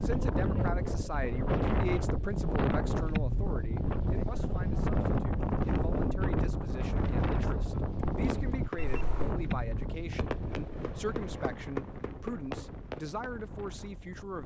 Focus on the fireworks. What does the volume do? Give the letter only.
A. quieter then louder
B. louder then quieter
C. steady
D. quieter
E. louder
C.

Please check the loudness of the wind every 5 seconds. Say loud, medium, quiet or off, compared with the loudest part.
loud, loud, quiet.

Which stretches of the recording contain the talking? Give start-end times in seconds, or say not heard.
0.0-14.4.